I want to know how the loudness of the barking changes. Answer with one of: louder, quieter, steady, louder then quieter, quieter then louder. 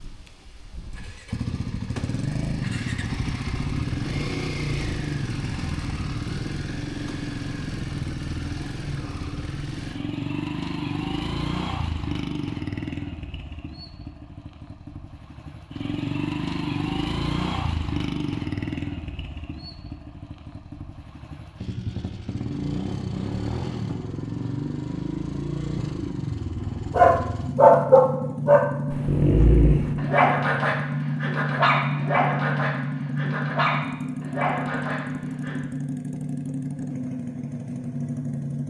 quieter.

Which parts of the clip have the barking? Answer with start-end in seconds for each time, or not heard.
26.9-35.5.